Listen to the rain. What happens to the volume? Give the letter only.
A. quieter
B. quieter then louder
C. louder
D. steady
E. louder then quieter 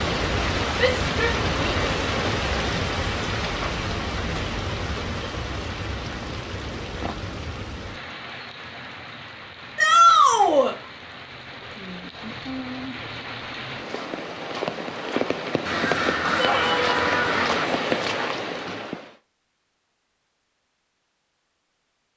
B.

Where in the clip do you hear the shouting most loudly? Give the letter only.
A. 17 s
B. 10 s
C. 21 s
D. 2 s
B.